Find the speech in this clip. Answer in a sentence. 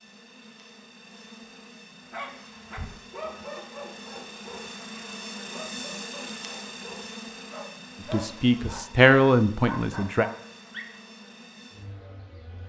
The speech can be heard from 8.1 to 10.2 s.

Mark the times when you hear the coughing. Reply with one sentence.
You can't hear the coughing here.